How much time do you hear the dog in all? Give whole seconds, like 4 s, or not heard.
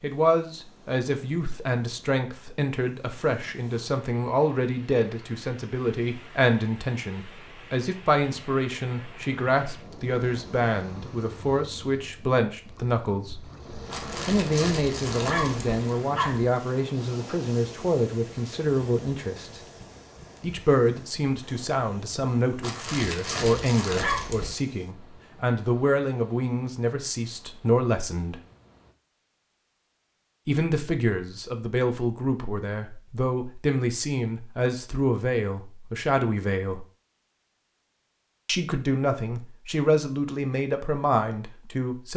5 s.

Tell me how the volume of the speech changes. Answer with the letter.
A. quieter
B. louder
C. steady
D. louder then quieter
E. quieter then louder
C.